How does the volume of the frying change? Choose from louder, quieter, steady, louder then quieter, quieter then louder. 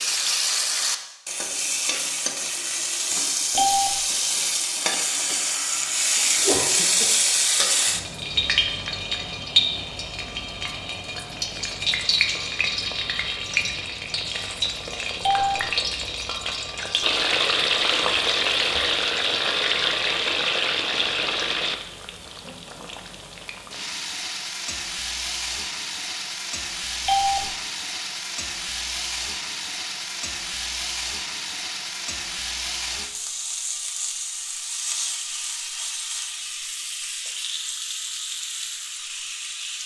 quieter.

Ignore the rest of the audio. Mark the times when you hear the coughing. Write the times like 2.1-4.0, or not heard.
6.2-7.2.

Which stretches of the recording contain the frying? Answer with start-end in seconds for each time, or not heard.
0.0-39.8.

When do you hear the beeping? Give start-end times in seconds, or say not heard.
3.5-4.0, 15.2-15.7, 27.1-27.5.